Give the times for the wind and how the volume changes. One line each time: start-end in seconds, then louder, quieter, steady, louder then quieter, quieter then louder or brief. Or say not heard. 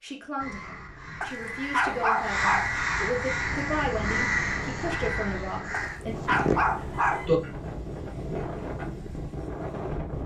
3.2-10.2 louder.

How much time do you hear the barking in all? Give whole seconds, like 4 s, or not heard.
3 s.